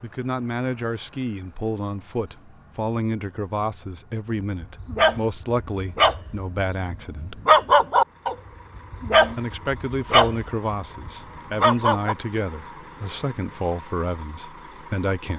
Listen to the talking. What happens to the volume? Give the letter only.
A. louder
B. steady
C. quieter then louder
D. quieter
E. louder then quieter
B.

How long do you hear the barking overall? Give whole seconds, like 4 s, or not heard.
8 s.